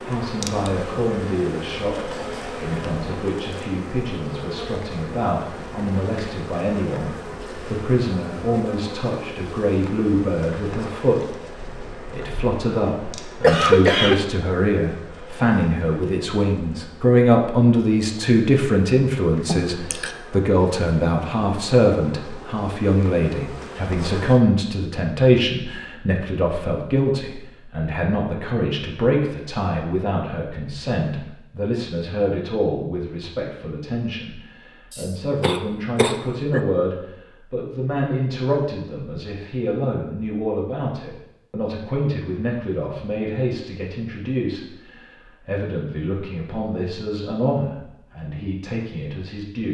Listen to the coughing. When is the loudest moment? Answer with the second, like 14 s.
14 s.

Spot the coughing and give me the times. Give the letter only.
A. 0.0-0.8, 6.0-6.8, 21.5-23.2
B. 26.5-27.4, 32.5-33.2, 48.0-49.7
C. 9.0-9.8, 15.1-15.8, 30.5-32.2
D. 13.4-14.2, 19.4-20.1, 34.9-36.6
D.